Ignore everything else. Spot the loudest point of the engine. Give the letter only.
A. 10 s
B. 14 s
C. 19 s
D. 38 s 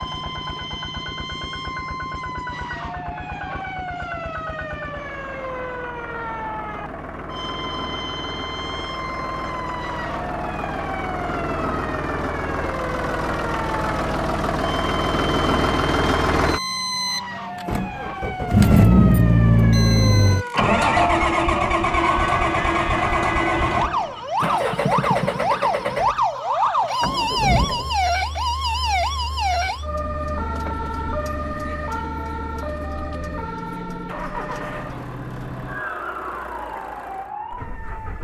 C.